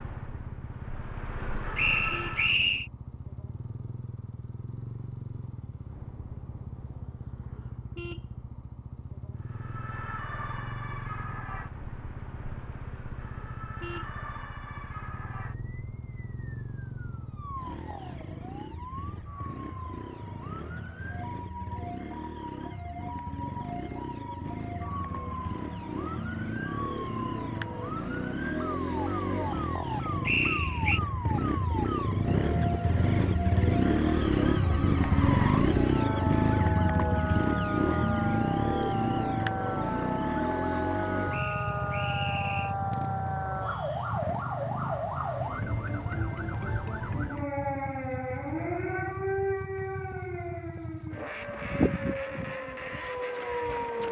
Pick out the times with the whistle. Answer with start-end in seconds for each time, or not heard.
1.8-2.9, 30.2-31.0, 41.3-42.8.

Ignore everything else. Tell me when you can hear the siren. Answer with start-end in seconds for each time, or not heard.
0.0-2.5, 9.3-54.0.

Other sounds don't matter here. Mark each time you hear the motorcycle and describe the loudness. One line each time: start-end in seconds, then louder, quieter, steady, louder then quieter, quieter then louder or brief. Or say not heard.
0.0-54.0 louder then quieter.